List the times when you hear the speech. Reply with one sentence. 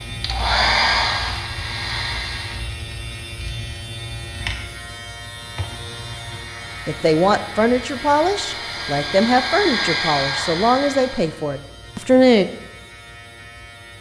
You can hear the speech from 6.8 to 12.4 s.